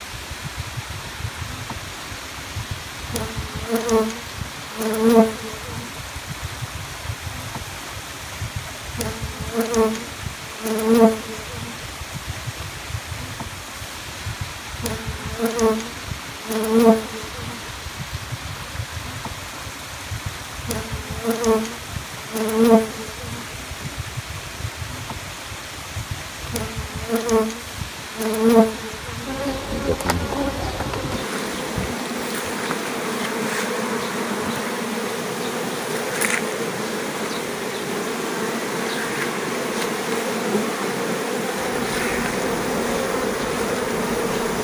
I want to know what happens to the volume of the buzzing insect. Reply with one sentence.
The loudness of the buzzing insect stays about the same.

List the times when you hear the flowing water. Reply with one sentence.
You can hear the flowing water from 0.0 to 44.5 s.